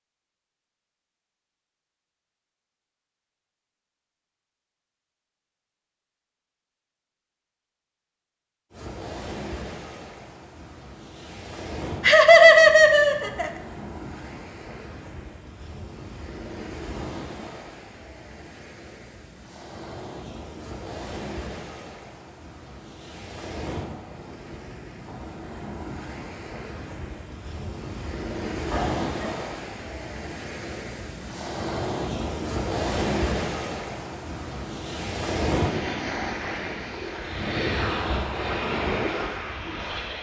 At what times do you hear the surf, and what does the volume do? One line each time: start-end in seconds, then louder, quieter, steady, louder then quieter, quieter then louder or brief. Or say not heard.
8.7-40.1 louder.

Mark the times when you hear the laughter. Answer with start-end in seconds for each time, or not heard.
12.0-13.5, 28.7-29.3.